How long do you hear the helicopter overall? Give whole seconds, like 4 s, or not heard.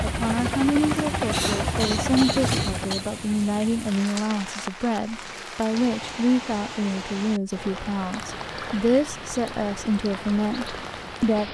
3 s.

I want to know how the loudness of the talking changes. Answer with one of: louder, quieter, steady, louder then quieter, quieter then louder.
steady.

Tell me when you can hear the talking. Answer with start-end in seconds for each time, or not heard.
0.0-11.4.